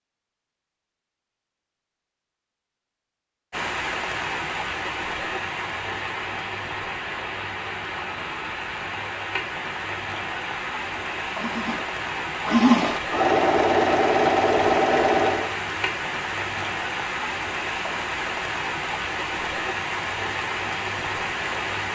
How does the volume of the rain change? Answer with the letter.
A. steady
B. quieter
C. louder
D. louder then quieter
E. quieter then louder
A.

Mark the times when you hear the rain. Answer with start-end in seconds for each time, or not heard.
3.5-21.9.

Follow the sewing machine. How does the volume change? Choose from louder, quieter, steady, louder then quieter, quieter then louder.
louder.